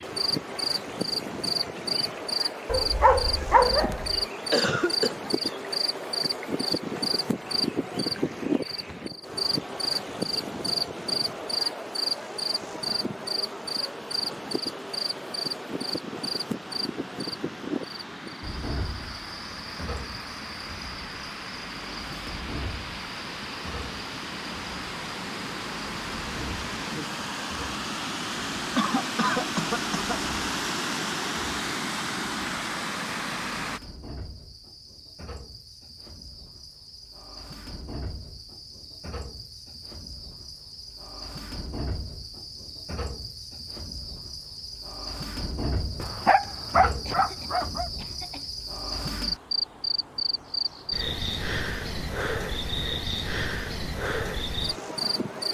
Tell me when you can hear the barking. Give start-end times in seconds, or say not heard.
2.6-4.2, 46.0-47.9.